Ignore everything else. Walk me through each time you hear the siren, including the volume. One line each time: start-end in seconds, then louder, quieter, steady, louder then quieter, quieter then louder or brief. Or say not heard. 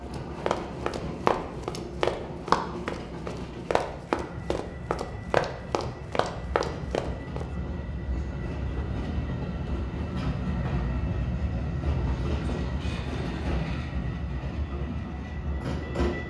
not heard.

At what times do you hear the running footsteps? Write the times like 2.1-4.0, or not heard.
0.1-7.5.